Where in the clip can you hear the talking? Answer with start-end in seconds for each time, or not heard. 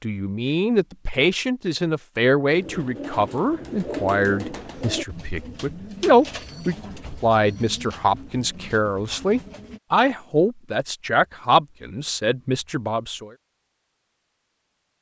0.0-13.3.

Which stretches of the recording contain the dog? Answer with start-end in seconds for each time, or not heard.
not heard.